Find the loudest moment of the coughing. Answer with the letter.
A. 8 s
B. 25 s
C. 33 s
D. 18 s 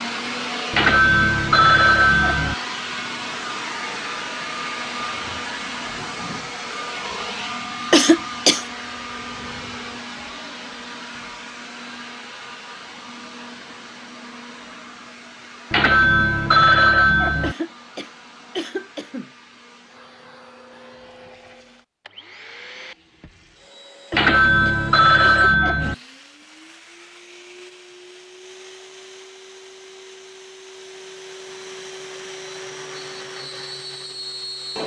A.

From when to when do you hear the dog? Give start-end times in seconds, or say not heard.
not heard.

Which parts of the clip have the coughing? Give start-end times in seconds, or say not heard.
7.9-8.7, 17.4-19.3, 24.1-26.0.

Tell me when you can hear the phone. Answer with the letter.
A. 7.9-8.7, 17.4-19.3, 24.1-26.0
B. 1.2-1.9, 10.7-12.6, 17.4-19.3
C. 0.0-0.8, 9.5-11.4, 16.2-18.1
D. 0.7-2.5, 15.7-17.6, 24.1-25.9
D.